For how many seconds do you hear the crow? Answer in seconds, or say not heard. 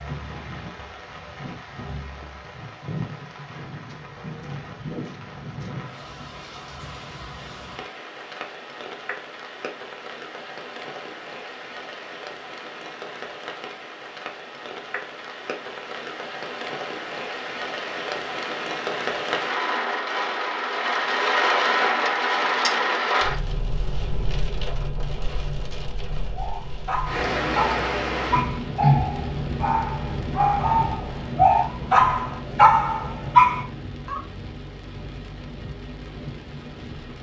not heard.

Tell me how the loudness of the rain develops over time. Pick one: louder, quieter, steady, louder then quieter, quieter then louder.
louder then quieter.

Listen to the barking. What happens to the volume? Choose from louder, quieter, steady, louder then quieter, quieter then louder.
louder.